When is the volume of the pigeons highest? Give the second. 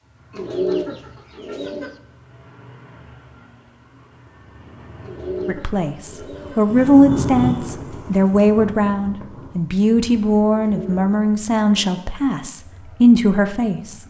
1 s.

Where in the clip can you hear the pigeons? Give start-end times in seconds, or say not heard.
0.3-1.9, 5.0-6.7, 10.5-12.1.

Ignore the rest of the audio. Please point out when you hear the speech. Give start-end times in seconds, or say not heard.
5.5-14.0.